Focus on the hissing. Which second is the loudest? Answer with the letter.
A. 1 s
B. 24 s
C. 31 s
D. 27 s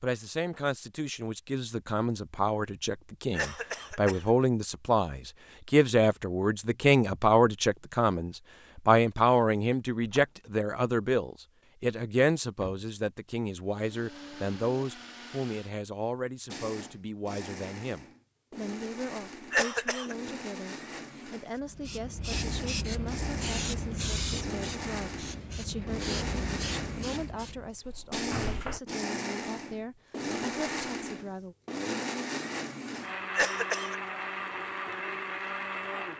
B.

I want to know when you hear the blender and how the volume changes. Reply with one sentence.
The blender can be heard from 13.7 to 36.1 s, getting louder.